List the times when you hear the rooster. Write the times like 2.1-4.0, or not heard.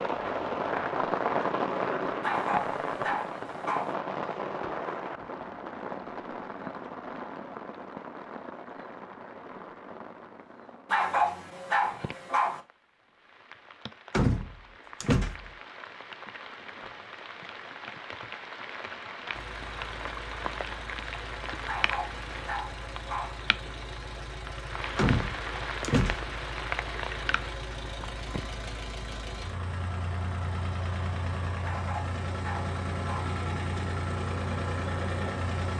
not heard.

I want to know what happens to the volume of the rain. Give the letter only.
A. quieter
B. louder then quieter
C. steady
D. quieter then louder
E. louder
D.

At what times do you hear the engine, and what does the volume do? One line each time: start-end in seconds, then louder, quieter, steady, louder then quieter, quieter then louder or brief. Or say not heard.
19.3-35.7 louder.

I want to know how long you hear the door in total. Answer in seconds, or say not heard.
3 s.